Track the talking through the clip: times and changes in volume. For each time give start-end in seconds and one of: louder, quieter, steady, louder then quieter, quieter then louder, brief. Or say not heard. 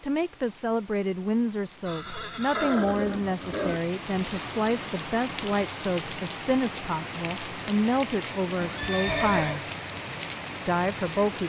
0.0-9.6 steady
10.7-11.4 brief.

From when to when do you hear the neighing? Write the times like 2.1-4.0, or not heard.
1.9-3.8, 8.6-9.7.